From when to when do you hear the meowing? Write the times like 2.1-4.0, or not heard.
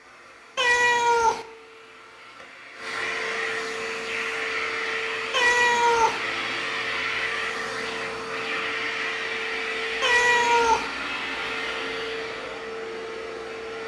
0.6-1.4, 5.3-6.2, 10.0-10.9.